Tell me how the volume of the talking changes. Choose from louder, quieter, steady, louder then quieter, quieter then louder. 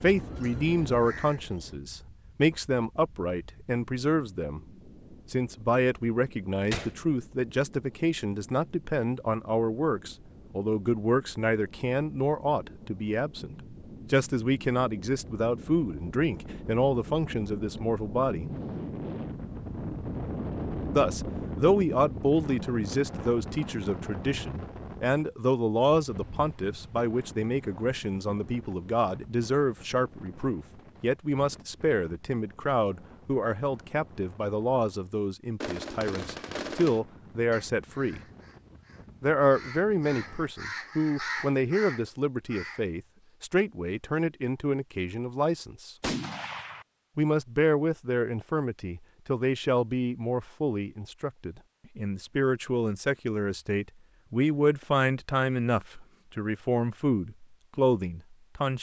steady.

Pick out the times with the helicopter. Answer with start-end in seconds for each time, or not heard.
not heard.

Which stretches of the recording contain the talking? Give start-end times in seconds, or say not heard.
0.0-4.6, 5.3-18.5, 20.9-38.2, 39.2-46.0, 47.1-58.7.